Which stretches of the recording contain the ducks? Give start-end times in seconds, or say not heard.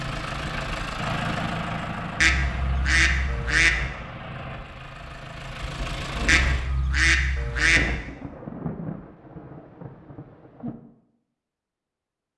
2.2-3.9, 6.2-8.0.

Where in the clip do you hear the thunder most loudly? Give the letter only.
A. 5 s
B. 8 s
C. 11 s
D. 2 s
B.